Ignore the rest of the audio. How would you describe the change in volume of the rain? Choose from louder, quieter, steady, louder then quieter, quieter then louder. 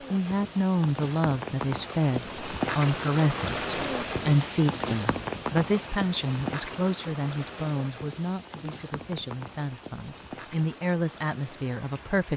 quieter.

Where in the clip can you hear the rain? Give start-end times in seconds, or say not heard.
0.0-12.3.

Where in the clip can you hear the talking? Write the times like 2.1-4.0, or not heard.
0.1-12.3.